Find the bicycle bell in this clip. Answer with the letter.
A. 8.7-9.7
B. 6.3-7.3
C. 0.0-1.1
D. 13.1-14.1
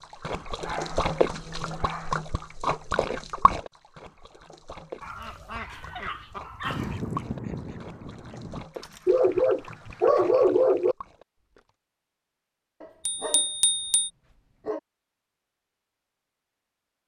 D.